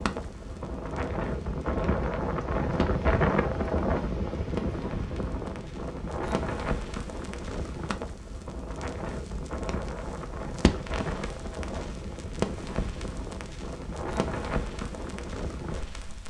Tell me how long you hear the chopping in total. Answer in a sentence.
You can't hear the chopping here.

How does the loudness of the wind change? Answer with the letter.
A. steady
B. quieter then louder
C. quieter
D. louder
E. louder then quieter
C.